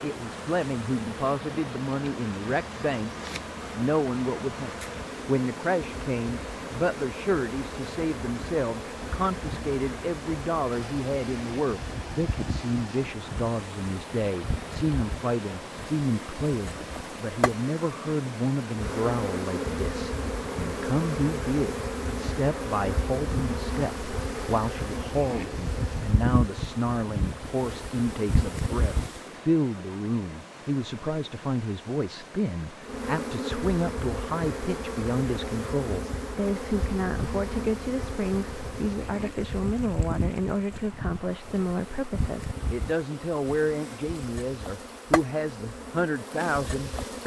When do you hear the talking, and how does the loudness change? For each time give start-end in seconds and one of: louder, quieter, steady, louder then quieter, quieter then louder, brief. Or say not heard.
0.0-47.2 steady.